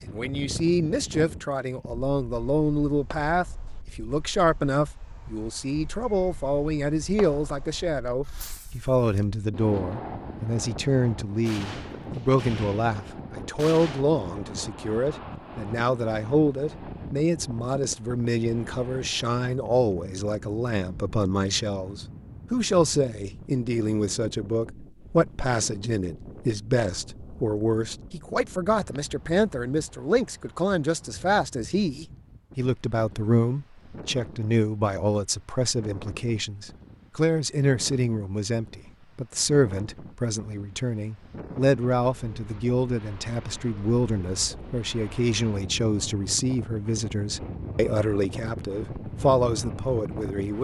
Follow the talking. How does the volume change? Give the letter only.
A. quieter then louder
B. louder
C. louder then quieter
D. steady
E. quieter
D.